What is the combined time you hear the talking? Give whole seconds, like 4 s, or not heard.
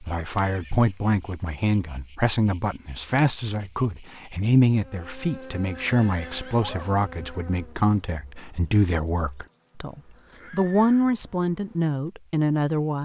13 s.